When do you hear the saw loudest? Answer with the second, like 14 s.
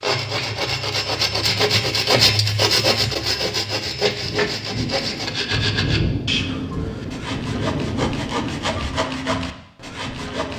2 s.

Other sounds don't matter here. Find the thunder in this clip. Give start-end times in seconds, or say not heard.
4.2-9.1.